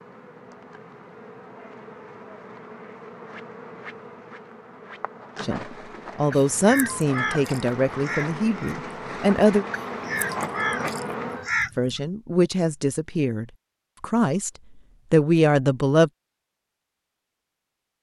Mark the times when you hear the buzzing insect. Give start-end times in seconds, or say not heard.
0.0-11.5.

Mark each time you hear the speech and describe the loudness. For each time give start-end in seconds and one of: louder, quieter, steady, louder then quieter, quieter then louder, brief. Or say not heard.
5.4-9.7 quieter
11.8-14.5 brief
15.1-16.1 brief.